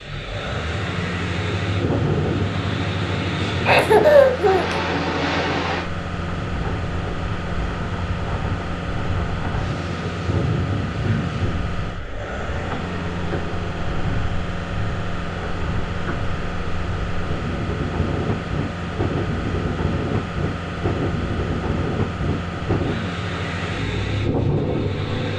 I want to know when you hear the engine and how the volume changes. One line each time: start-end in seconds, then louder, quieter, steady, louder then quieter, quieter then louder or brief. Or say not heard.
0.0-25.3 steady.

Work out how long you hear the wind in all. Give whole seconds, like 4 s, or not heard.
25 s.